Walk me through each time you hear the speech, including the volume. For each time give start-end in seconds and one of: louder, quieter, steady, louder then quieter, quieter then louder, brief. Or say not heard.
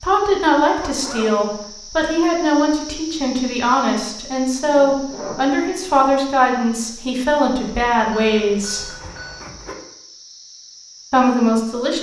0.0-8.9 steady
11.1-11.9 brief.